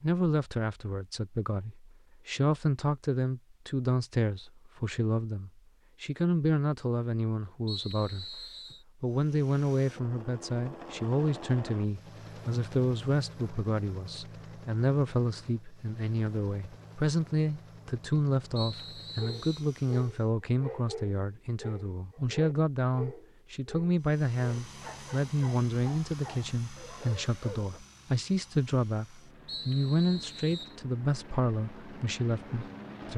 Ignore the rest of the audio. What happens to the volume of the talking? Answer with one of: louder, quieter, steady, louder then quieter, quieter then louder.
steady.